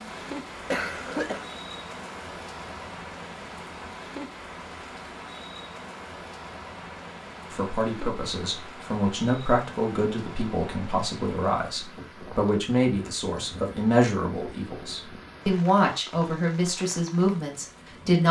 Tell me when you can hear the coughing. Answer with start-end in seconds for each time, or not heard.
0.2-1.4.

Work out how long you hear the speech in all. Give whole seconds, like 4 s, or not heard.
11 s.